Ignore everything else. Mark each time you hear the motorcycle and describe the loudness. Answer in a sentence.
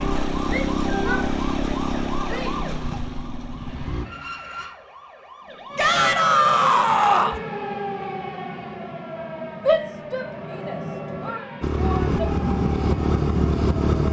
The motorcycle can be heard from 0.0 to 4.1 s, getting quieter; and briefly from 11.6 to 14.0 s.